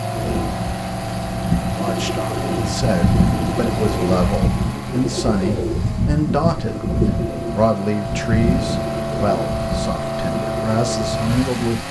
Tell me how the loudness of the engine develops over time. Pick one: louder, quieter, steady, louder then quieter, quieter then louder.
quieter then louder.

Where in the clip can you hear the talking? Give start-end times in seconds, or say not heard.
1.8-11.8.